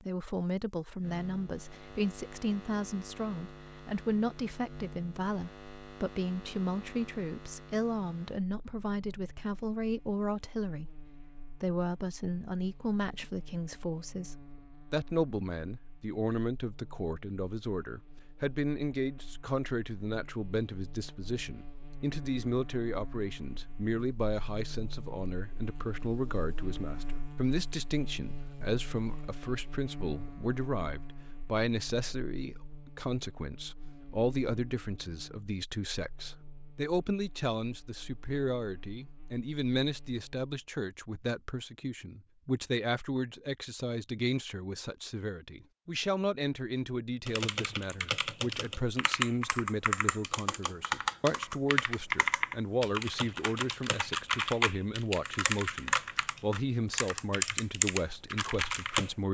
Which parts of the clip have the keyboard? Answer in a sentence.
The keyboard can be heard from 47.2 to 59.1 s.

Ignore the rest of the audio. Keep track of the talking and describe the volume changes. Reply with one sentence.
The loudness of the talking stays about the same.